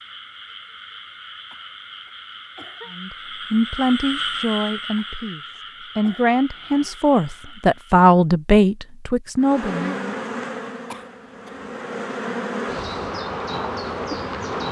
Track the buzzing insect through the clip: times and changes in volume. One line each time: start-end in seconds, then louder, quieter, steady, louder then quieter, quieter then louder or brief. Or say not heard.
9.3-14.6 quieter then louder.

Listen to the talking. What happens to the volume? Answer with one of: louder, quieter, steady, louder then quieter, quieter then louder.
quieter then louder.